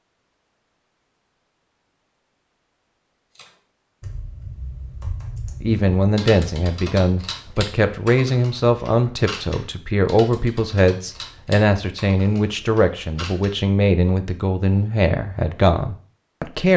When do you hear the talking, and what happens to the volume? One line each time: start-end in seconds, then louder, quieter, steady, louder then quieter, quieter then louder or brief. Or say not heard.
5.6-16.7 steady.